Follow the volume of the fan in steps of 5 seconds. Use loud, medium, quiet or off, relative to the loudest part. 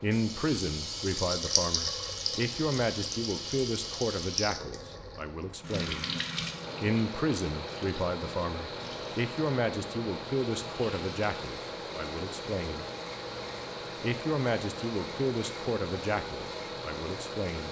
quiet, loud, loud, loud.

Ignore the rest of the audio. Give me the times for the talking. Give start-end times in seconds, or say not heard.
0.0-6.0, 6.8-12.8, 14.0-17.6.